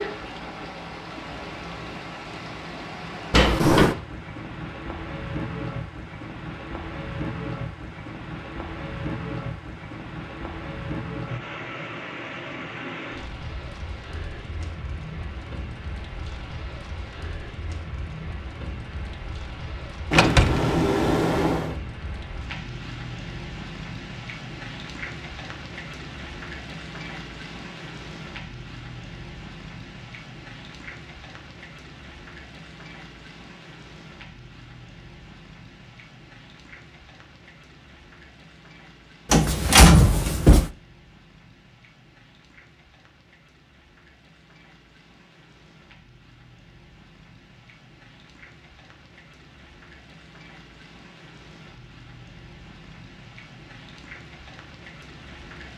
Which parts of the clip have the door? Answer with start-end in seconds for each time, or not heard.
3.3-4.0, 20.1-21.8, 39.3-40.7.